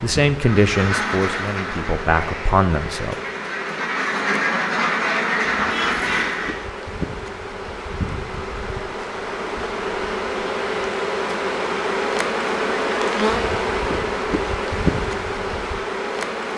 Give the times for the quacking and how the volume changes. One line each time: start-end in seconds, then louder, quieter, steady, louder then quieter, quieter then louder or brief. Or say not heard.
0.4-6.7 quieter then louder.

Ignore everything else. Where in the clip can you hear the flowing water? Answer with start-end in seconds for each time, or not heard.
not heard.